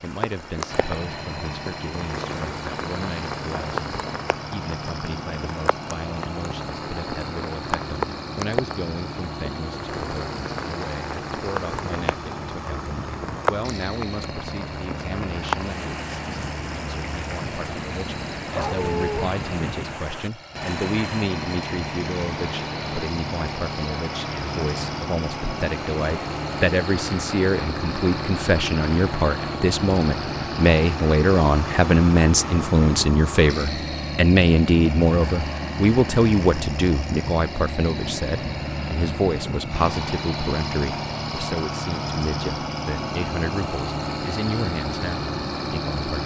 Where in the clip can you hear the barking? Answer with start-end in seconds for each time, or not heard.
18.5-19.3.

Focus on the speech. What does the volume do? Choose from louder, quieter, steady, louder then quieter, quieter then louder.
louder then quieter.